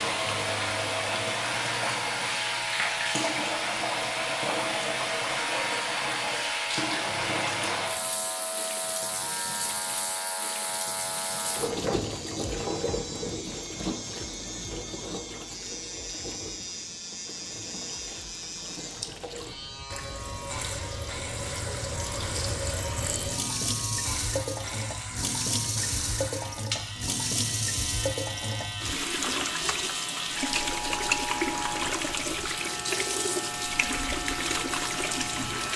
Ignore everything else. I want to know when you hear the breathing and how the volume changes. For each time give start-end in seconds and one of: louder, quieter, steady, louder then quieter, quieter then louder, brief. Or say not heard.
not heard.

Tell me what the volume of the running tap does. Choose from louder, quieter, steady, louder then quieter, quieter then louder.
quieter then louder.